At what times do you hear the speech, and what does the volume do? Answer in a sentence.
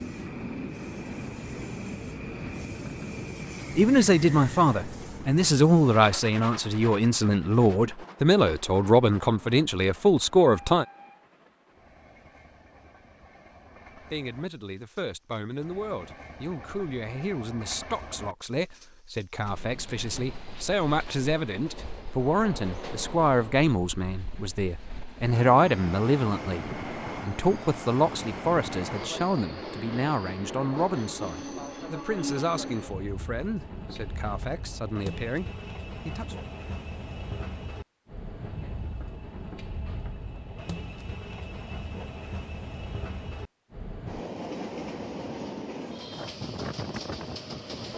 You can hear the speech from 3.8 to 10.8 s, at a steady volume; and from 13.9 to 36.4 s, getting louder then quieter.